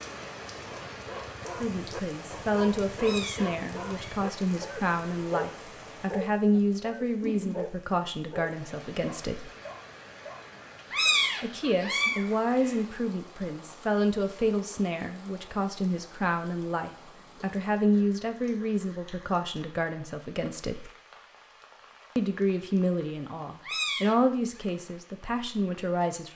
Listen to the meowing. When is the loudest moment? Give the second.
11 s.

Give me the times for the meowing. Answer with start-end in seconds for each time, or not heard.
3.0-4.2, 10.9-12.7, 23.6-24.1.